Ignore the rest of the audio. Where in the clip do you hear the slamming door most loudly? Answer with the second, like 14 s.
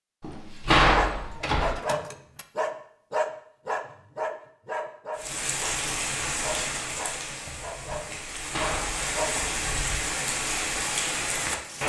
1 s.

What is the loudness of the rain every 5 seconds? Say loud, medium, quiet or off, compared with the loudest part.
off, loud, loud.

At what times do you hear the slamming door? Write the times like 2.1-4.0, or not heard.
0.2-1.8, 8.1-9.6.